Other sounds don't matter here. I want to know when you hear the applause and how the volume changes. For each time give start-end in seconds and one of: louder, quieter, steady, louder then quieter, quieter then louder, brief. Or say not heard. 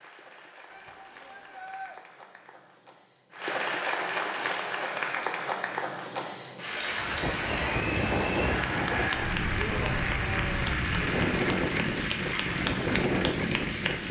0.0-14.0 louder.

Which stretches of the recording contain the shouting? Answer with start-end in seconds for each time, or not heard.
0.7-1.9, 9.6-10.8.